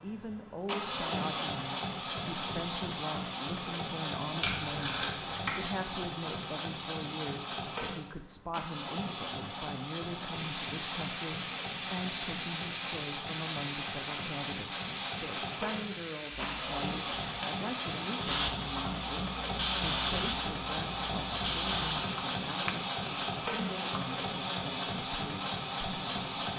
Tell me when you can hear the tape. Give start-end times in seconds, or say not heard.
4.4-5.6, 16.3-17.4.